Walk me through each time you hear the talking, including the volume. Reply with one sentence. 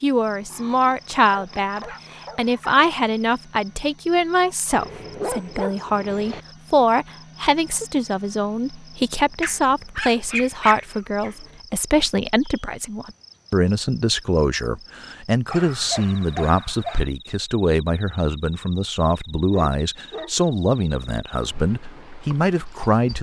You can hear the talking from 0.0 to 23.1 s, at a steady volume.